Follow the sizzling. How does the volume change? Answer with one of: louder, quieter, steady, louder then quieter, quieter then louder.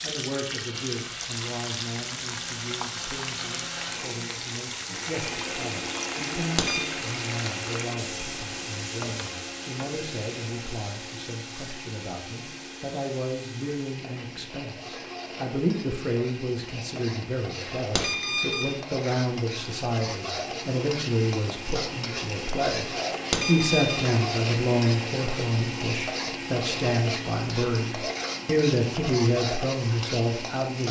quieter then louder.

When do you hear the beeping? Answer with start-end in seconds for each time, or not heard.
6.3-6.9, 17.6-18.8, 23.1-24.0.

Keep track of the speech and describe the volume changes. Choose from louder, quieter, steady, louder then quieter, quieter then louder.
louder.